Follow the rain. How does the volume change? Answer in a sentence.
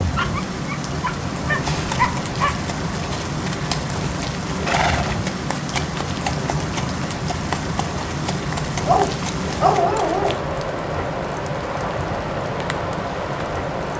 The volume of the rain stays about the same.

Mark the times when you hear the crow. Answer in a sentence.
You can't hear the crow here.